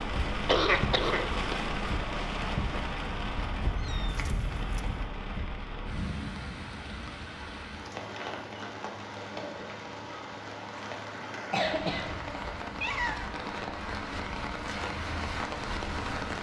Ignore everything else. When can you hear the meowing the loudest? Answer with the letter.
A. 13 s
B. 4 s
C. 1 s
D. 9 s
A.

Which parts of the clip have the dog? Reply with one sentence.
The dog can't be heard in this clip.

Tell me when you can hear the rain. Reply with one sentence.
The rain can be heard from 0.0 to 16.3 s.